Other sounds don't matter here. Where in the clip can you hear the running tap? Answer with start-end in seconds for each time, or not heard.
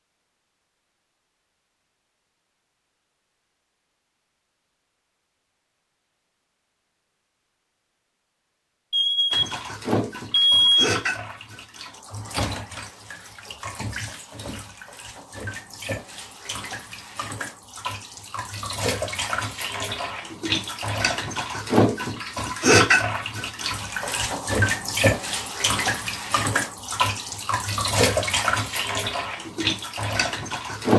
9.3-30.9.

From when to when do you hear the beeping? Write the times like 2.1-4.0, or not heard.
8.9-9.6, 10.3-10.9.